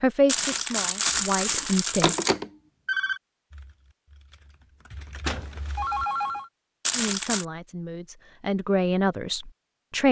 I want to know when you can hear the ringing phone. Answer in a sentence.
You can hear the ringing phone from 1.6 to 3.2 s and from 5.2 to 6.5 s.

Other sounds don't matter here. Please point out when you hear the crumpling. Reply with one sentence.
You can hear the crumpling from 0.2 to 2.3 s and from 6.8 to 7.5 s.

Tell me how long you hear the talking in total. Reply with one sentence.
You can hear the talking for 5 seconds altogether.